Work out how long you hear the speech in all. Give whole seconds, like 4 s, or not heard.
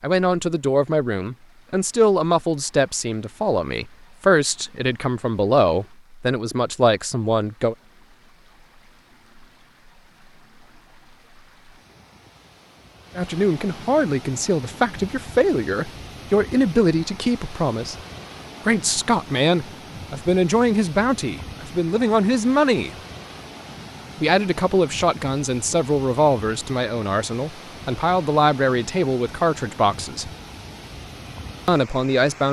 24 s.